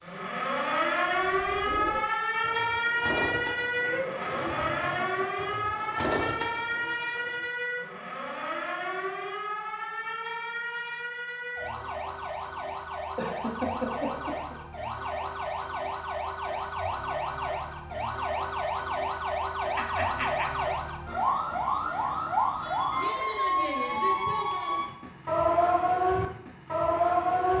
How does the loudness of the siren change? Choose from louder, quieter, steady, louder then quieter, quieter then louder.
quieter then louder.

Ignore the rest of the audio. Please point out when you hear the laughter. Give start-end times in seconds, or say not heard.
3.8-4.2, 13.2-14.6, 19.8-20.4.